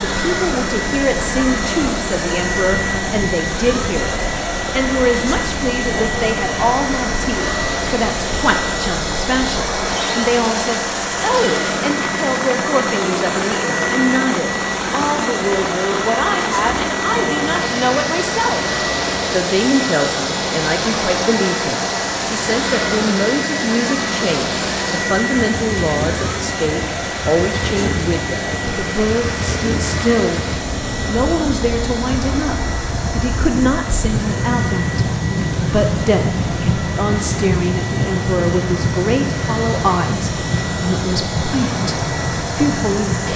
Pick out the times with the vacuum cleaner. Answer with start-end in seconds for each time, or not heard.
0.0-43.3.